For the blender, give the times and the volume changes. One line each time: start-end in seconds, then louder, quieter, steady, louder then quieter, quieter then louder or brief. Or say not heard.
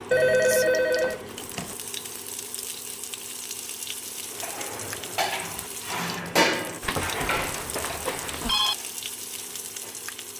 not heard.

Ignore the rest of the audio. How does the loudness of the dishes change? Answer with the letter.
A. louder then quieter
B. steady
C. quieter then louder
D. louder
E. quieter
A.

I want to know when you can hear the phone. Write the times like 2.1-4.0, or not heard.
0.1-1.8, 6.8-8.8.